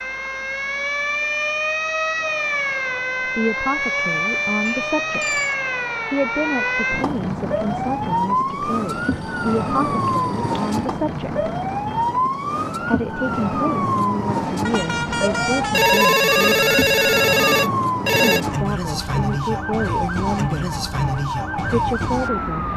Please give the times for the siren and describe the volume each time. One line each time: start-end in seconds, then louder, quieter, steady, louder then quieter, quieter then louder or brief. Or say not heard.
0.0-22.7 steady.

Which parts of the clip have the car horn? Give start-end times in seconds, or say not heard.
14.7-15.8.